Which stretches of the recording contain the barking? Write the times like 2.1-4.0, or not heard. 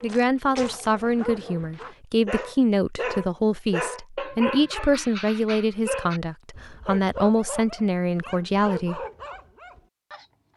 0.0-10.5.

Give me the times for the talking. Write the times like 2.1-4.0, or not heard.
0.0-9.0.